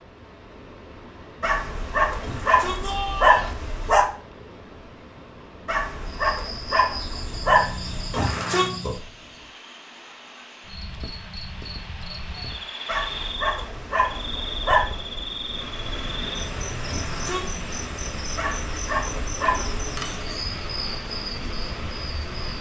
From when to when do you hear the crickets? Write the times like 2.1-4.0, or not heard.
6.2-22.5.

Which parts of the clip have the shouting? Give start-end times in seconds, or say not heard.
2.2-3.6, 8.1-8.7, 16.9-17.6.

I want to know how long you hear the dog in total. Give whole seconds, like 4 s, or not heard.
9 s.